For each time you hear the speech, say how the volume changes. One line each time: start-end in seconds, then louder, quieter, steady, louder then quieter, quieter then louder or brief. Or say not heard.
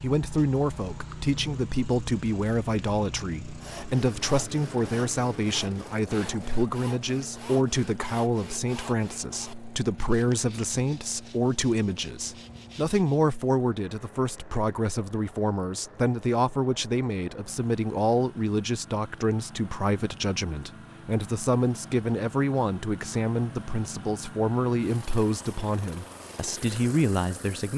0.0-27.7 steady.